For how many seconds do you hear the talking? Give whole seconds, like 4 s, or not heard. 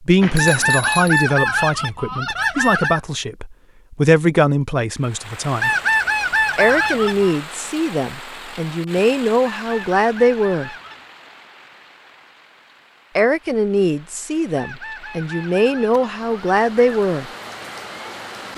14 s.